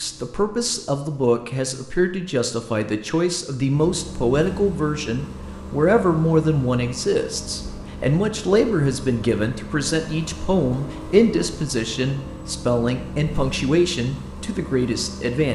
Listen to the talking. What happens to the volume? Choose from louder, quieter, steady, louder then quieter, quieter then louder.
steady.